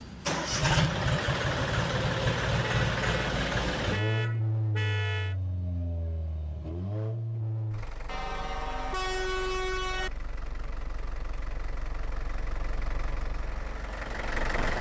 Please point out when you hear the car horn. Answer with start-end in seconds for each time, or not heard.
2.6-5.3, 8.1-10.1.